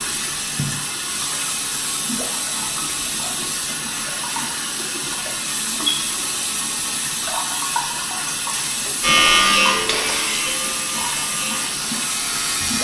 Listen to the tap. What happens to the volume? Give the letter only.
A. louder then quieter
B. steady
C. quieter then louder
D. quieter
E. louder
B.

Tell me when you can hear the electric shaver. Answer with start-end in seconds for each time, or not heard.
9.0-12.7.